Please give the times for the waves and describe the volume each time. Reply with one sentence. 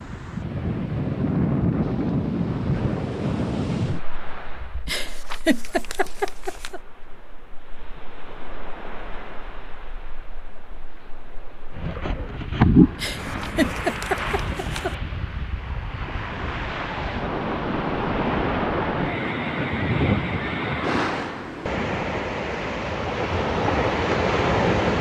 You can hear the waves from 0.0 to 24.9 s, getting quieter then louder.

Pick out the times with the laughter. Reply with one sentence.
The laughter can be heard from 4.8 to 6.8 s and from 12.9 to 14.9 s.